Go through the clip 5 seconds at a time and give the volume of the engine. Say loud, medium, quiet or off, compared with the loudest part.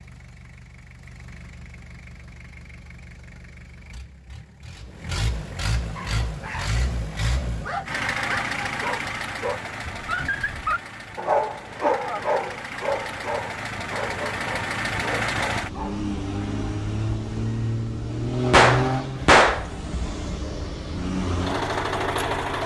quiet, loud, medium, loud, loud.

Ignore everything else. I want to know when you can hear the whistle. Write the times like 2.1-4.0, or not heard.
not heard.